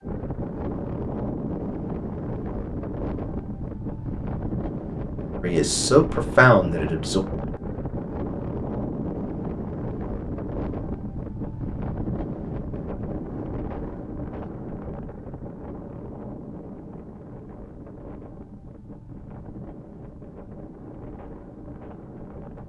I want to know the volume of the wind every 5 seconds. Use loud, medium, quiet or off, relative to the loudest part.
loud, loud, loud, medium, medium.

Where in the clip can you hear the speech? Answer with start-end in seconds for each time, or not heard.
5.4-7.2.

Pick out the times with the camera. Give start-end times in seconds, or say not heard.
not heard.